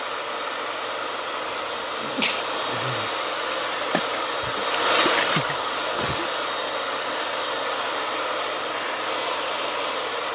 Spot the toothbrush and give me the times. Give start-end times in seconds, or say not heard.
not heard.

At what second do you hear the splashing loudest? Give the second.
5 s.